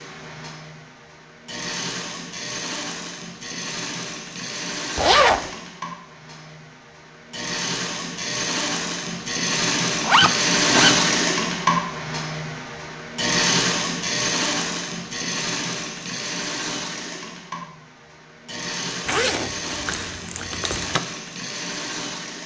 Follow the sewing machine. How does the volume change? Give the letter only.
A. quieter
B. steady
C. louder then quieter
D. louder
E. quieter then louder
C.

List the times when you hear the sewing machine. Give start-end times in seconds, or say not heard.
0.0-22.4.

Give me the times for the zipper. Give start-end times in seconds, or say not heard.
5.0-5.5, 10.0-10.9, 19.1-21.0.